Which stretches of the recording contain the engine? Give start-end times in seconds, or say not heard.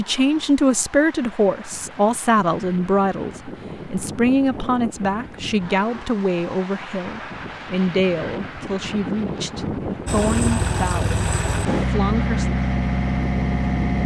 10.1-14.0.